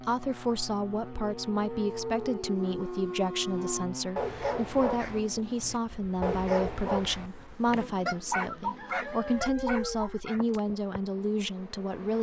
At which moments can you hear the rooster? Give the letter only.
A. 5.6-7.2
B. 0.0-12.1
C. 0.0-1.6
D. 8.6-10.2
D.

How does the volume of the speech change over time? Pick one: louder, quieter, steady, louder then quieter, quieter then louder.
steady.